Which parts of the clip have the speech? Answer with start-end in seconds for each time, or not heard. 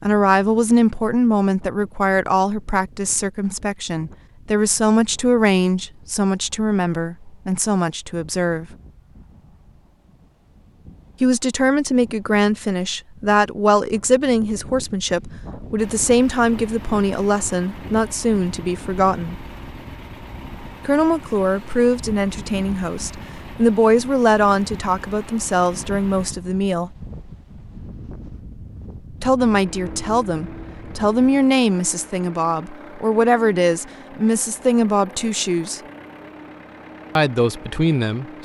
0.0-8.7, 11.2-19.4, 20.9-26.9, 29.2-35.8, 37.1-38.2.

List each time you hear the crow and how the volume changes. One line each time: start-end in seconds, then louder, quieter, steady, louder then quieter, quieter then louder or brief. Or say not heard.
not heard.